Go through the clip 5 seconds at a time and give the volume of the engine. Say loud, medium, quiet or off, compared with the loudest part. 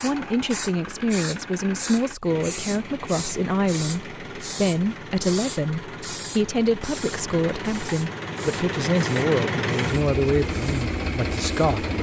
medium, loud, loud.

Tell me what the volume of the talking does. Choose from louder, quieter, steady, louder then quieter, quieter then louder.
steady.